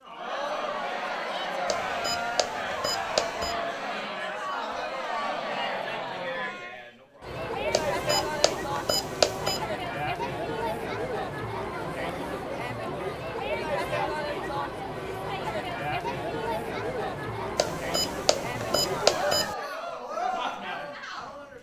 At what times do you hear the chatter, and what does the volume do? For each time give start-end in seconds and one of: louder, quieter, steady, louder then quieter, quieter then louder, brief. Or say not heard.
0.0-21.5 steady.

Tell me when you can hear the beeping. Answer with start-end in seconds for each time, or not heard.
1.6-3.5, 7.7-9.6, 17.6-19.6.